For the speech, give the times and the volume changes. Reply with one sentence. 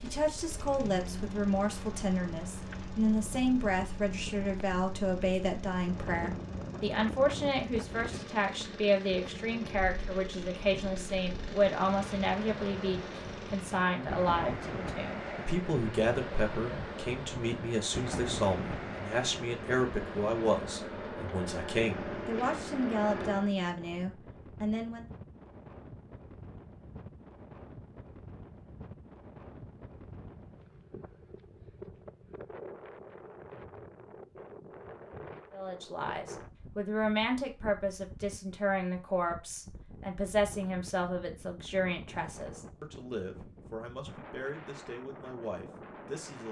You can hear the speech from 0.0 to 25.1 s, at a steady volume; and from 35.5 to 46.4 s, getting quieter.